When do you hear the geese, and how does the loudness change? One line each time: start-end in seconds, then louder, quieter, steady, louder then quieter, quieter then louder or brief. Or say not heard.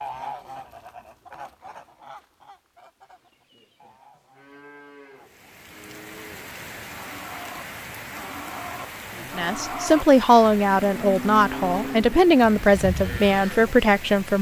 0.0-5.3 quieter.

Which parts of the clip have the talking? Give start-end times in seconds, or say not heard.
9.3-14.3.